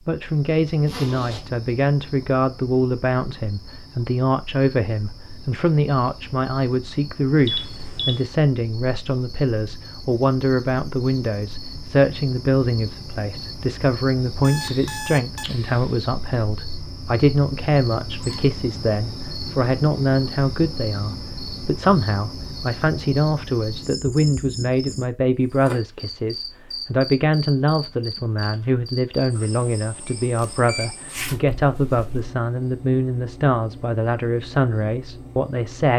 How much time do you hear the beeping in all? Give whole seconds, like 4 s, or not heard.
3 s.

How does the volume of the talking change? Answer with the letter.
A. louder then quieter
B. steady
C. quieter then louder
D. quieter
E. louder
B.